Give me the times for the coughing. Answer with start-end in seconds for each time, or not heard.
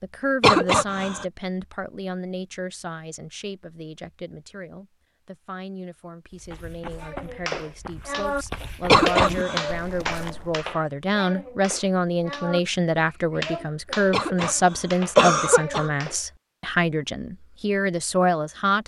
0.4-1.2, 8.8-9.7, 14.1-14.6, 15.2-15.9.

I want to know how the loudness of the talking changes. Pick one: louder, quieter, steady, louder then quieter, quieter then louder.
quieter then louder.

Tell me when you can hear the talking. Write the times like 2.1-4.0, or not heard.
0.0-18.8.